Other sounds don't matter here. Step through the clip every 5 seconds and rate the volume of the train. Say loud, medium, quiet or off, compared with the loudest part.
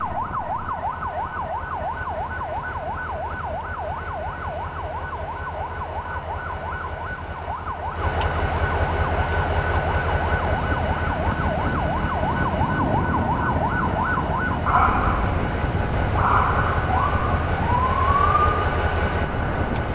medium, loud, loud, loud.